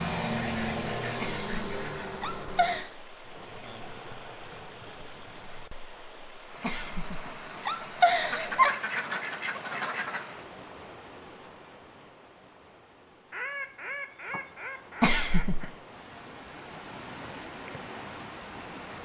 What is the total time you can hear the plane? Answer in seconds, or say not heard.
3 s.